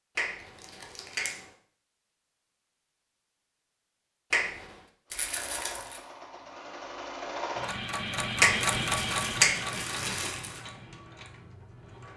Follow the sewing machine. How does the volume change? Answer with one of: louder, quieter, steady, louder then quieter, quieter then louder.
louder then quieter.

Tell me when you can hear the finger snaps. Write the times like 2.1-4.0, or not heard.
0.1-1.5, 4.3-4.8, 8.4-9.8.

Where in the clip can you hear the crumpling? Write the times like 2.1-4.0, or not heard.
0.6-1.4, 5.1-6.0, 8.6-10.7.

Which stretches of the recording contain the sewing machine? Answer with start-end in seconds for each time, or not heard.
5.0-12.1.